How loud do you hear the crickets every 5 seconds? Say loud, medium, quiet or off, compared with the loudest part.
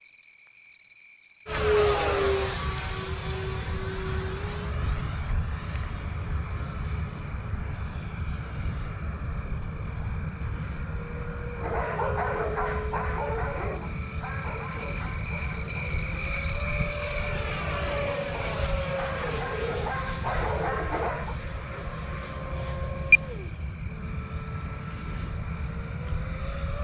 quiet, quiet, medium, loud, quiet, quiet.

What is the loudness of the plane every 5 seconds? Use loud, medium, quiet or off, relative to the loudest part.
loud, medium, medium, medium, loud, medium.